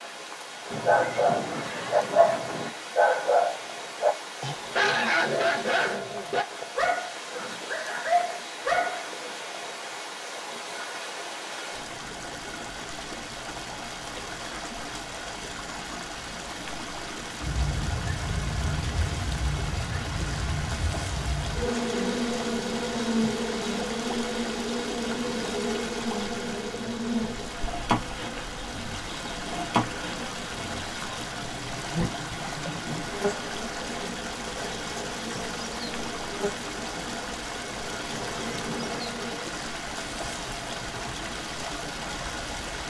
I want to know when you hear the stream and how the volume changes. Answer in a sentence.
The stream can be heard from 0.0 to 42.8 s, at a steady volume.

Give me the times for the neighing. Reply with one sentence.
You can hear the neighing from 0.7 to 2.7 s and from 38.0 to 39.0 s.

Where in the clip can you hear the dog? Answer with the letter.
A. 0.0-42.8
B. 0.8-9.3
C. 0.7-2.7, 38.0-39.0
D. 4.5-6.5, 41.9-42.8
B.